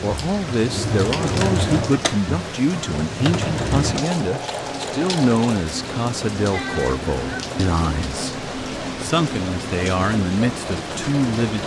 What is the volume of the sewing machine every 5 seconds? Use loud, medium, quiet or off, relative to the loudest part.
loud, medium, medium.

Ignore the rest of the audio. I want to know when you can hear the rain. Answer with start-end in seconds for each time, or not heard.
0.0-11.6.